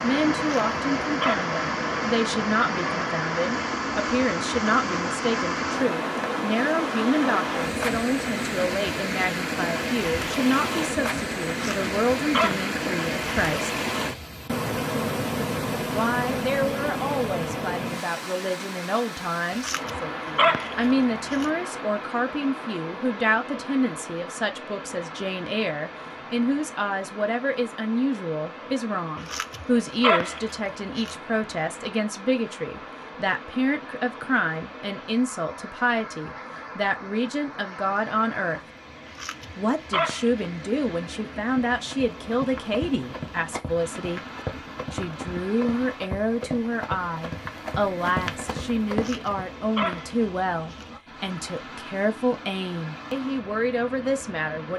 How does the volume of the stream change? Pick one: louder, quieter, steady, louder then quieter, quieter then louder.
quieter.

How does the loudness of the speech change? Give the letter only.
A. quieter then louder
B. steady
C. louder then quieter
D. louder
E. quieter
B.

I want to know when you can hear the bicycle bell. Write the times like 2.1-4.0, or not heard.
not heard.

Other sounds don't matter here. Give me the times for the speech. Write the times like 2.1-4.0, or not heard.
0.0-13.8, 15.9-38.6, 39.5-44.2, 44.9-54.7.